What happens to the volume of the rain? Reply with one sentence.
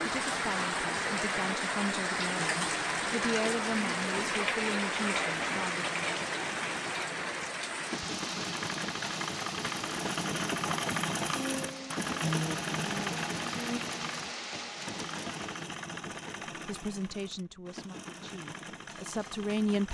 The volume of the rain goes down.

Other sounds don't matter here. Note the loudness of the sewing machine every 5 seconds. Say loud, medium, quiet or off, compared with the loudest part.
medium, medium, loud, medium.